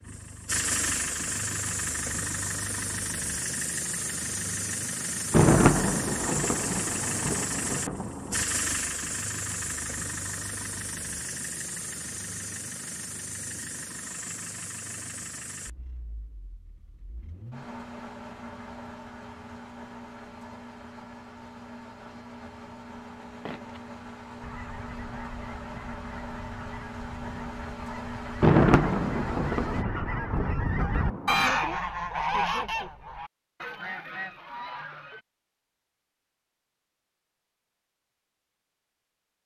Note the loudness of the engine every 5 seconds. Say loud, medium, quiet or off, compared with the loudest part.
loud, loud, medium, medium, medium, medium, off, off.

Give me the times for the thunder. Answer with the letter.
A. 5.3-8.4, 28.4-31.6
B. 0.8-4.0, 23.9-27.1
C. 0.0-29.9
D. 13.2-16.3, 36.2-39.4
A.